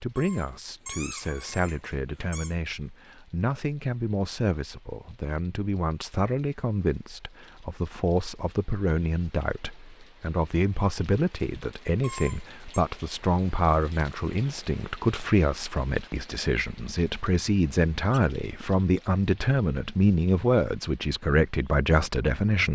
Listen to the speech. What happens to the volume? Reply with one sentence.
The loudness of the speech goes up.